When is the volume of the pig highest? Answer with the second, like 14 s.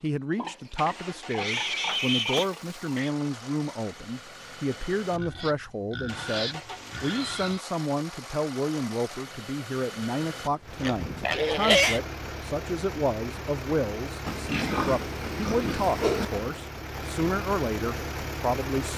12 s.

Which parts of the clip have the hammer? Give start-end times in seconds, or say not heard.
not heard.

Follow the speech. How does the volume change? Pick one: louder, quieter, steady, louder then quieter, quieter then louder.
steady.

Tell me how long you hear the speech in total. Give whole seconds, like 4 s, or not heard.
19 s.